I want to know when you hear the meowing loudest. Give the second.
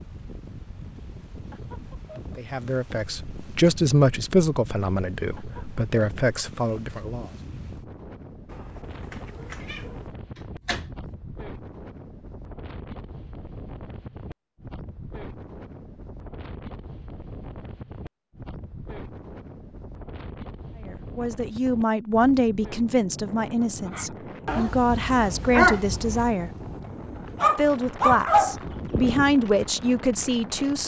10 s.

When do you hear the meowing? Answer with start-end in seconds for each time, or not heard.
8.4-10.1.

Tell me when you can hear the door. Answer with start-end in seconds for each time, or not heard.
10.3-11.1.